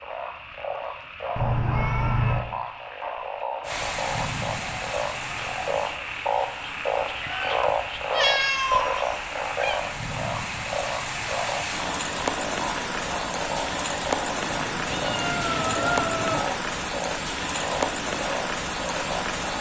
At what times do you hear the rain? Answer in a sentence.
You can hear the rain from 3.6 to 19.5 s.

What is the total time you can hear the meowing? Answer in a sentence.
You can hear the meowing for 6 seconds altogether.